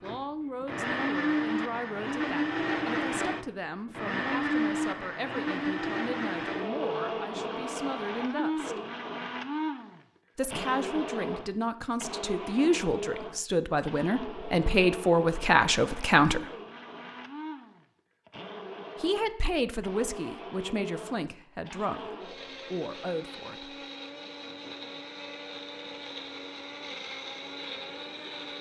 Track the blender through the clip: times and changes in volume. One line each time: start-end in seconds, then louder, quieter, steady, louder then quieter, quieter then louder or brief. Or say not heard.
0.0-28.5 quieter.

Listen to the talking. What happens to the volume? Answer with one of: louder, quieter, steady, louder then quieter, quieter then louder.
louder then quieter.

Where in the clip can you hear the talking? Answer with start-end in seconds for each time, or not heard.
0.0-8.8, 10.3-16.4, 19.0-23.8.